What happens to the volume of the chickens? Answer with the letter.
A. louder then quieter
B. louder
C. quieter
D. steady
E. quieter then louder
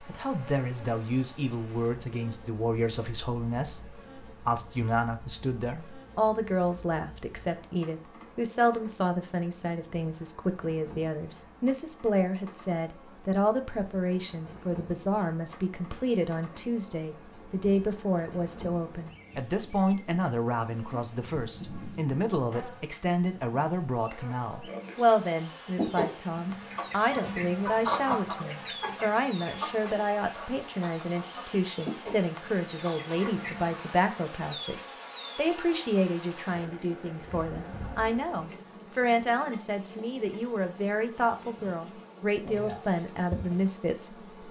A.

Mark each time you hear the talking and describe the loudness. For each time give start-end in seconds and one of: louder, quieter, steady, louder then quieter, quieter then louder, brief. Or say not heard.
0.1-44.4 steady.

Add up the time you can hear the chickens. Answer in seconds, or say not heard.
8 s.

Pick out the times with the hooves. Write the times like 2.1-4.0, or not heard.
not heard.